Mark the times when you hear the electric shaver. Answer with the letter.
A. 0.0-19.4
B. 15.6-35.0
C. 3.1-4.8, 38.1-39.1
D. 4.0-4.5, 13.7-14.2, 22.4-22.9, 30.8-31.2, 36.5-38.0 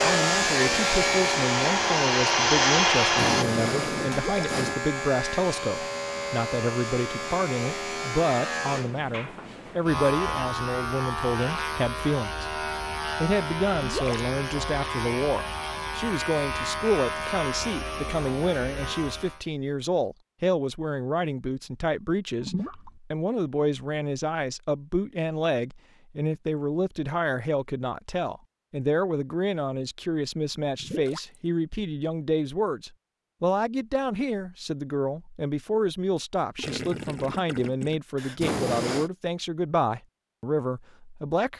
A.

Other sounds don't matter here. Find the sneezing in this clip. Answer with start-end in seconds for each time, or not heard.
3.1-4.8, 38.1-39.1.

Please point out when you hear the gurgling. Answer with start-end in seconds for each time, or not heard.
4.0-4.5, 13.7-14.2, 22.4-22.9, 30.8-31.2, 36.5-38.0.